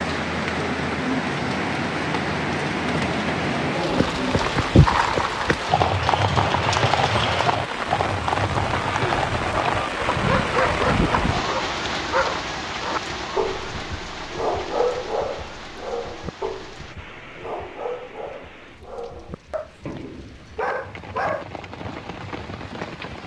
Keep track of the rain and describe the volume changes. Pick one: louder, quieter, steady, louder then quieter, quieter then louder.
quieter.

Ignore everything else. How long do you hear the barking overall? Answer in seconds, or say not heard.
12 s.